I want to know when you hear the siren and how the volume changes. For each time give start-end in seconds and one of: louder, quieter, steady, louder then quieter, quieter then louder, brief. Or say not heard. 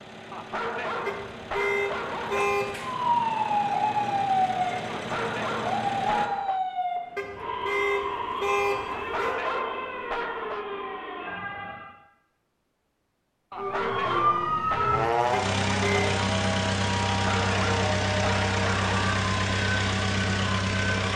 2.8-11.9 quieter
13.6-21.1 quieter.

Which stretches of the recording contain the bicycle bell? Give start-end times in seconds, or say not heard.
not heard.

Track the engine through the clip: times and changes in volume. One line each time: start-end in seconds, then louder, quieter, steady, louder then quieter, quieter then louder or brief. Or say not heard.
0.0-6.3 louder
14.3-21.1 steady.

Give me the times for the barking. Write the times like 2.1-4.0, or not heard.
0.3-2.5, 4.9-6.6, 8.9-10.7, 13.5-15.1, 17.2-19.1.